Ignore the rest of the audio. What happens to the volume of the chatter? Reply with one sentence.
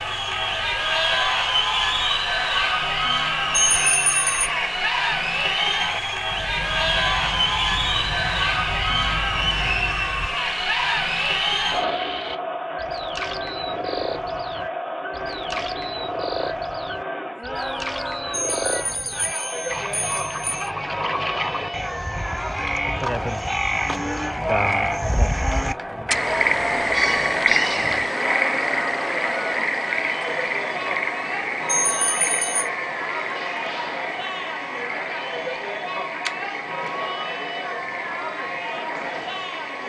The loudness of the chatter goes down.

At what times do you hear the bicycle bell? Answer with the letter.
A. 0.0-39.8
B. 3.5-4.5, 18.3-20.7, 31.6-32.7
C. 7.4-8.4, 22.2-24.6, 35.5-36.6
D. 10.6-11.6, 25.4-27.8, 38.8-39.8
B.